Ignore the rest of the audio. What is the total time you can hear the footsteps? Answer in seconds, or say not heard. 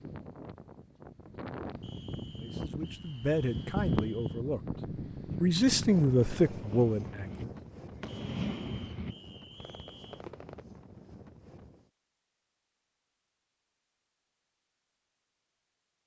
not heard.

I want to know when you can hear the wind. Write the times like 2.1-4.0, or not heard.
0.0-11.9.